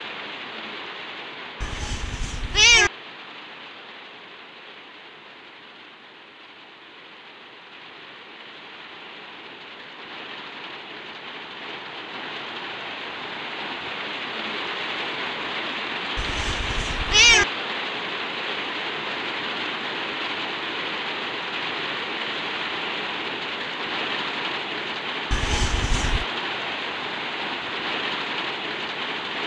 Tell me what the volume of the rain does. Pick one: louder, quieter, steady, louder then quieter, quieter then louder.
louder.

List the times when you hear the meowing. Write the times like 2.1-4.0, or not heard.
1.6-2.9, 16.1-17.4, 25.3-26.2.